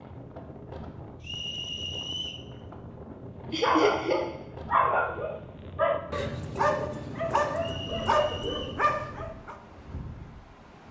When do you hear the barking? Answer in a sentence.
The barking can be heard from 3.6 to 9.6 s.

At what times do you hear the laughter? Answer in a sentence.
You can hear the laughter from 3.5 to 4.2 s.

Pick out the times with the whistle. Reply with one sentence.
You can hear the whistle from 1.2 to 2.5 s and from 7.5 to 8.8 s.